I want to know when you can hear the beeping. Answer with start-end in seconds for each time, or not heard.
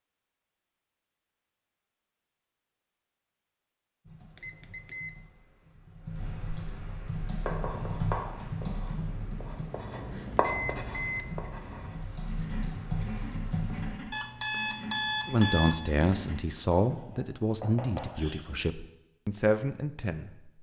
4.3-5.1, 10.4-11.3, 14.1-15.8.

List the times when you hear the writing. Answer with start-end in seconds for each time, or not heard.
7.2-18.6.